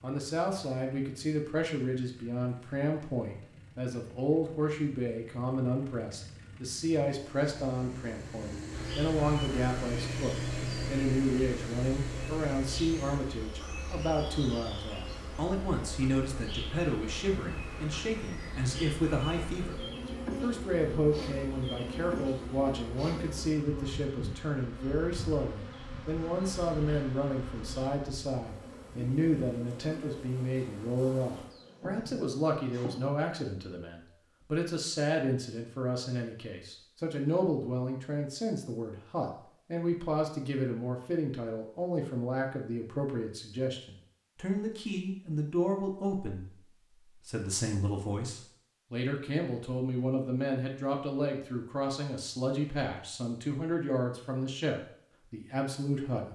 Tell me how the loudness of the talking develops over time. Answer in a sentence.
The volume of the talking stays about the same.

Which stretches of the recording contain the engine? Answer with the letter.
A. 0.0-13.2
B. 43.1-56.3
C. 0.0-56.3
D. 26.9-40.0
A.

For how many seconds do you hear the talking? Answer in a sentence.
You can hear the talking for 56 seconds altogether.